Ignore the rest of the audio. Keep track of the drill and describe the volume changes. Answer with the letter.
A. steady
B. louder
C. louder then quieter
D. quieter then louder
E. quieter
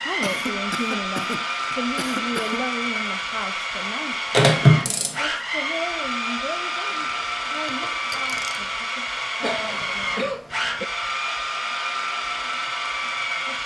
A.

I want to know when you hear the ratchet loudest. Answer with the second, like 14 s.
5 s.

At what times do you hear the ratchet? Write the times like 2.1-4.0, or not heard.
4.3-5.2, 7.0-8.7.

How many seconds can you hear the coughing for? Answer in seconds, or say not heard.
4 s.